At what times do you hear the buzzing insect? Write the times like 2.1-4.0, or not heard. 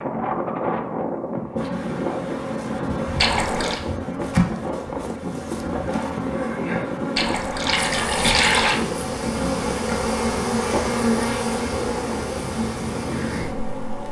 1.6-14.0.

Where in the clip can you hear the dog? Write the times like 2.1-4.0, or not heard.
not heard.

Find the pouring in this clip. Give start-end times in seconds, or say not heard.
3.2-3.8, 7.2-8.8.